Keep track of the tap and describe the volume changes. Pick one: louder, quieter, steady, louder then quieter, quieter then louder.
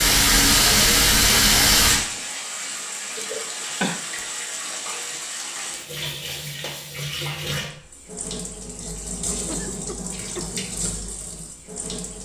quieter.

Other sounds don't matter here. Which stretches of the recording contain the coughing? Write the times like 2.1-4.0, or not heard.
3.1-4.0, 9.4-10.7.